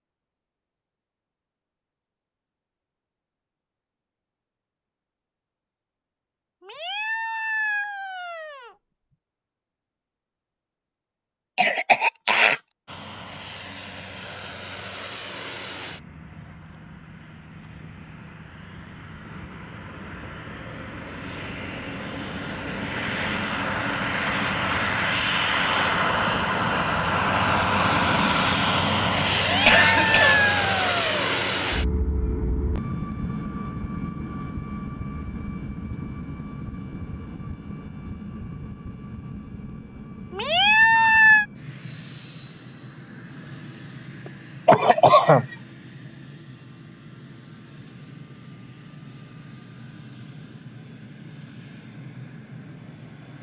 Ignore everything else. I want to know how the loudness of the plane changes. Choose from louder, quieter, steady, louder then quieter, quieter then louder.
louder then quieter.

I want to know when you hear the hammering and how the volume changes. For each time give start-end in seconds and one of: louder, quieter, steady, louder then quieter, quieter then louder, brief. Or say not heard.
not heard.